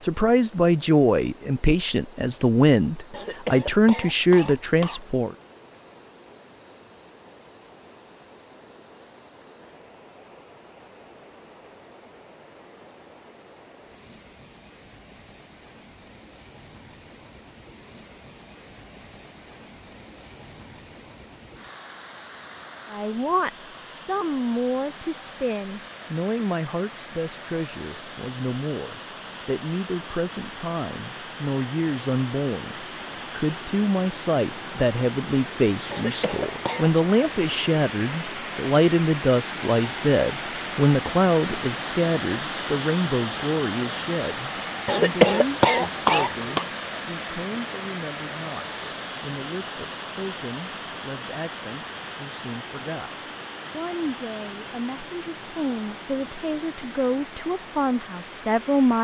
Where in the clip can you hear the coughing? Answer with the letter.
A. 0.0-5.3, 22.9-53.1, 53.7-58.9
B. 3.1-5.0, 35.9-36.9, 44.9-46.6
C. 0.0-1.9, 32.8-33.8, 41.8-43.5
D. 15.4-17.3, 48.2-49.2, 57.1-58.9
B.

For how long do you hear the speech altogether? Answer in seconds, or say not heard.
41 s.